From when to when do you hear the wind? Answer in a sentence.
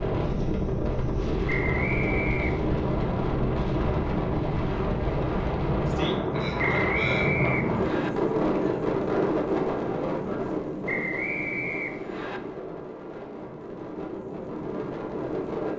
The wind can be heard from 0.0 to 15.7 s.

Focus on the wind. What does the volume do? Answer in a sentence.
The volume of the wind goes down.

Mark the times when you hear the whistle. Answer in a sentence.
You can hear the whistle from 1.4 to 2.6 s, from 6.5 to 8.1 s and from 10.8 to 12.4 s.